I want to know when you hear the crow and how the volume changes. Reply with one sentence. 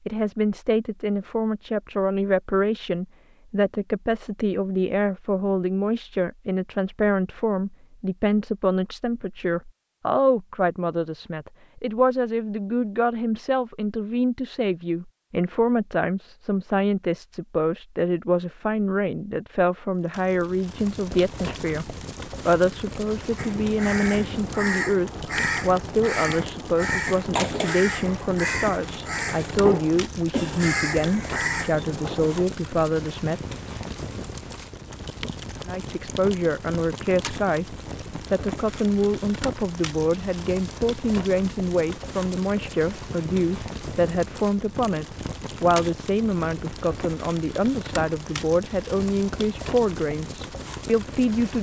You can hear the crow from 23.4 to 32.5 s, at a steady volume.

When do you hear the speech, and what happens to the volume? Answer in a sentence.
You can hear the speech from 0.1 to 33.5 s, at a steady volume; briefly from 35.6 to 37.6 s; and from 38.3 to 51.5 s, at a steady volume.